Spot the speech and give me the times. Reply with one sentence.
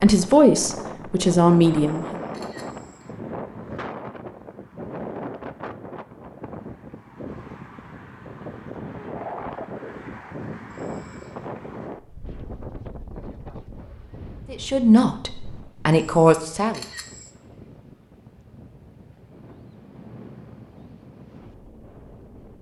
You can hear the speech from 0.0 to 2.2 s and from 14.5 to 16.8 s.